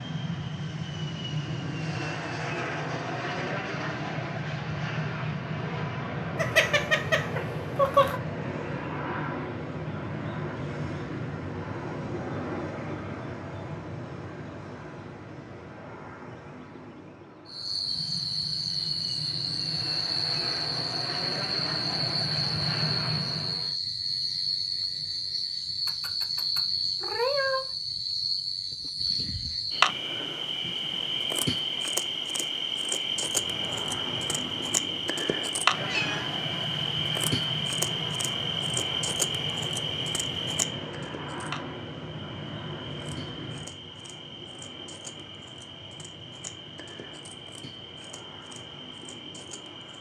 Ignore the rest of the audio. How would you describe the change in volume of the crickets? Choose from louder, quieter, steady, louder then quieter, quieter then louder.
quieter.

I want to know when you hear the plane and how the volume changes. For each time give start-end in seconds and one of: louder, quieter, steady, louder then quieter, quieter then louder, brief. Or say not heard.
0.0-23.8 quieter then louder
33.0-49.9 quieter.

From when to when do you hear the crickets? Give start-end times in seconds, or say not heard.
17.4-49.9.